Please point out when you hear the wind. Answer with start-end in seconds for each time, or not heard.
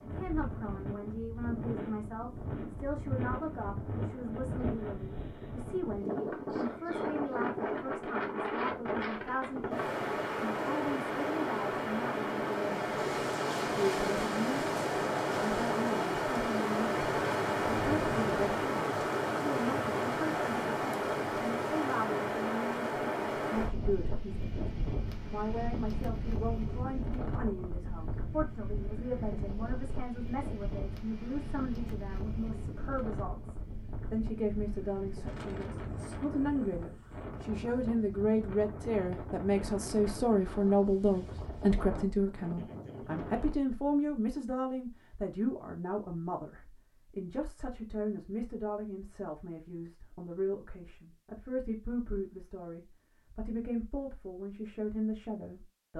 0.0-43.5.